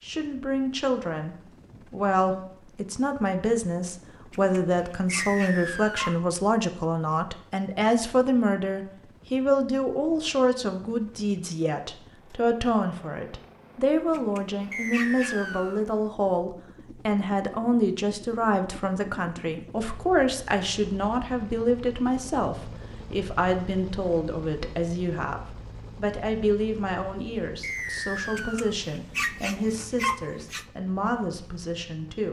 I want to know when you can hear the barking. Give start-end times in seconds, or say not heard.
4.3-6.2, 14.1-15.5, 28.4-30.6.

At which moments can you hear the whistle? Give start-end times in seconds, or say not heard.
5.1-6.2, 14.7-15.8, 27.6-28.8.